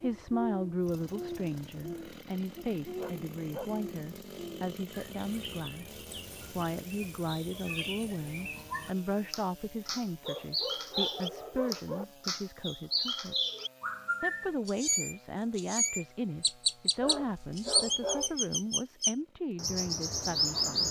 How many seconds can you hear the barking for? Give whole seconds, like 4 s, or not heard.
4 s.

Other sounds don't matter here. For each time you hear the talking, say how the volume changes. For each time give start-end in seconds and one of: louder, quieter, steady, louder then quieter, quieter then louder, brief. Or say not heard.
0.0-13.3 steady
14.2-20.8 steady.